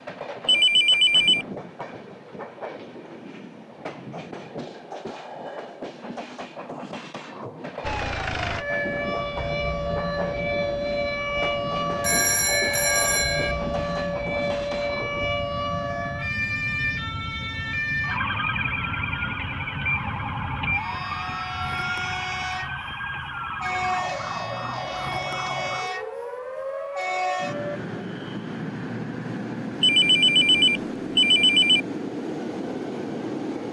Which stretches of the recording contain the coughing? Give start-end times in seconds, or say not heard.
not heard.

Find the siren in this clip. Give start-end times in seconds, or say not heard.
7.8-27.8.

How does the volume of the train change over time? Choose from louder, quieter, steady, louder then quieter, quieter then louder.
louder.